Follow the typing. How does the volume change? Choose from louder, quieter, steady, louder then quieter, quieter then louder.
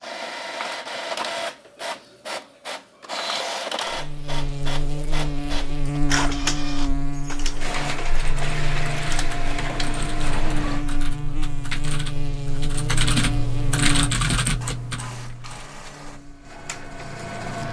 louder.